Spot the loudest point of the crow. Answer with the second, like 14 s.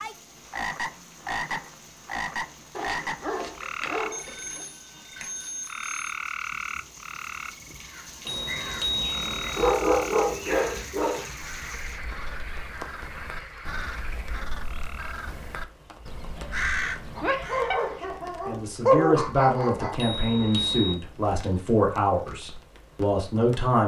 17 s.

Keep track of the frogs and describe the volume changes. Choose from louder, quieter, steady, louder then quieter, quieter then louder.
quieter.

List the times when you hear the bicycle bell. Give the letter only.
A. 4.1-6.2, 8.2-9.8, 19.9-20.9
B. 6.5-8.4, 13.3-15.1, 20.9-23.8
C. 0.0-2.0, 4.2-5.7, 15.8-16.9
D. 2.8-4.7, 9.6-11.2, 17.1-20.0
A.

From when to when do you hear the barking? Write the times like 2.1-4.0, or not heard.
2.8-4.7, 9.6-11.2, 17.1-20.0.